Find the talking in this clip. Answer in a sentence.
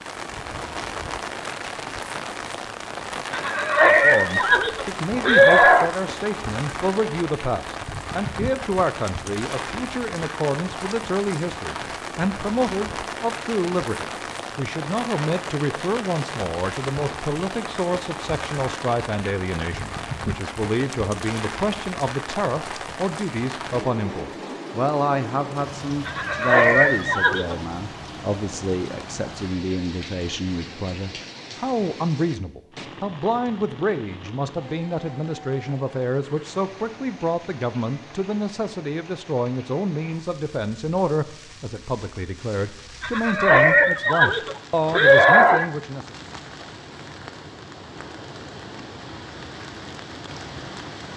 You can hear the talking from 3.9 to 46.1 s.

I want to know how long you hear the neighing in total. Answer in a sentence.
The neighing can be heard for 7 seconds in total.